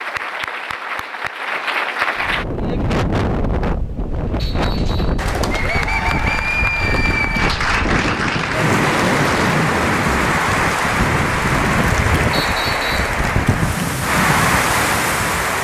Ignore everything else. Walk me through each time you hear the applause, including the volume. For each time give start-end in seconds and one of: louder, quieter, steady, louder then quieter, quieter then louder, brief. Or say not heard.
0.0-2.5 brief
5.2-15.5 steady.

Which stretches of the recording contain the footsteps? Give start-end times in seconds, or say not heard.
not heard.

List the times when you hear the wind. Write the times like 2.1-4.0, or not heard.
2.1-15.5.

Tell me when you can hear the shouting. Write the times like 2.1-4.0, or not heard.
not heard.